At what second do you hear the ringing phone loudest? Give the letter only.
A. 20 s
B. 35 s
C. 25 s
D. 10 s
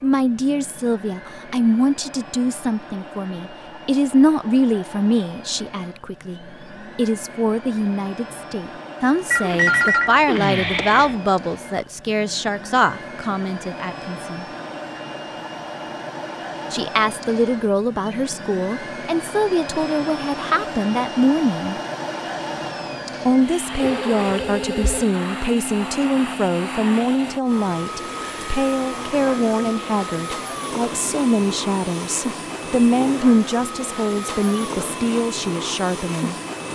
D.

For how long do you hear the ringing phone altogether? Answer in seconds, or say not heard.
3 s.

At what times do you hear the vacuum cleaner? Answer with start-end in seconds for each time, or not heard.
0.0-36.7.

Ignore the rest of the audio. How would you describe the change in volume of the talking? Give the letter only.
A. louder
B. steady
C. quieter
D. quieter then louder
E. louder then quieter
B.